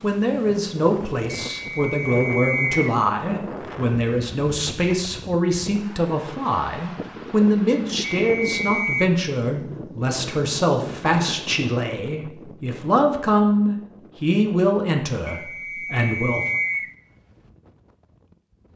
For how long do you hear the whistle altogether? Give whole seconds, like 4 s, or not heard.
4 s.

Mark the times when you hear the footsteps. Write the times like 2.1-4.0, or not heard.
not heard.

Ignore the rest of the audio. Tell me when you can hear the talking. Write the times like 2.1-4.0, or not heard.
0.0-16.4.